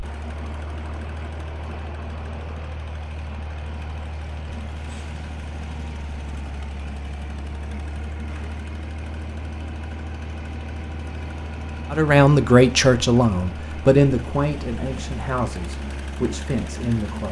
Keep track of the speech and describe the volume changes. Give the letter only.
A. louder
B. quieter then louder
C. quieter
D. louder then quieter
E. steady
C.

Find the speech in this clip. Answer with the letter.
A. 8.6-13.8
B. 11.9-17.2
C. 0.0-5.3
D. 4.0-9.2
B.